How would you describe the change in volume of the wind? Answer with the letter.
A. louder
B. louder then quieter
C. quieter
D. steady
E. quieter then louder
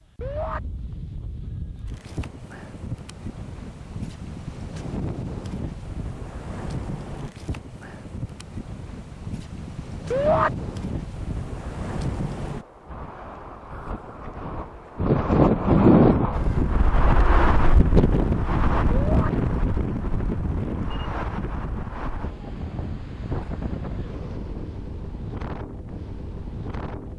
B.